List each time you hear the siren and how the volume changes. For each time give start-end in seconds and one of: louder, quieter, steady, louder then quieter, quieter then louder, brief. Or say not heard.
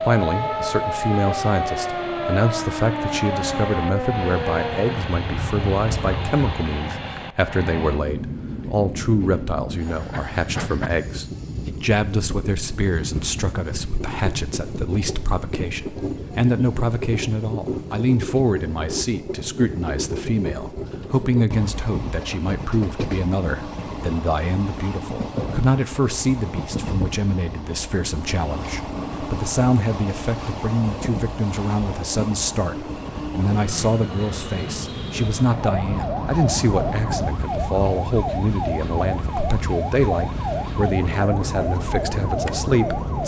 0.1-6.5 quieter
35.5-43.2 steady.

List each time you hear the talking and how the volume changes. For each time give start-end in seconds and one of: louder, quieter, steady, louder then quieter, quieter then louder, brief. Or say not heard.
0.0-43.2 steady.